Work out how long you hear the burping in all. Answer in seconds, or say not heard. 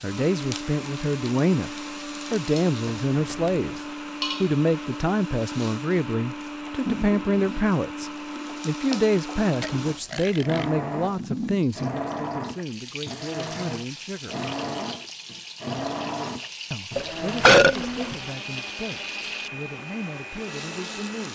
3 s.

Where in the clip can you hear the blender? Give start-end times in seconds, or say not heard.
0.0-21.3.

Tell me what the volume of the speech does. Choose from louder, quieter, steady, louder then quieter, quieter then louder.
quieter.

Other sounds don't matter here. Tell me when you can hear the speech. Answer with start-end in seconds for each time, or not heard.
0.0-14.3, 16.7-21.3.